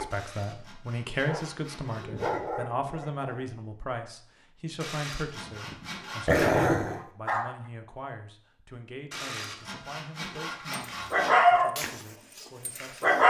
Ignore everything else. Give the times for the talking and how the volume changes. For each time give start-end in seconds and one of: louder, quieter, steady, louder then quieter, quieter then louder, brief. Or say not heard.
0.0-13.2 quieter.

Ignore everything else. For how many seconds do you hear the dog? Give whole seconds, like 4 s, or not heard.
8 s.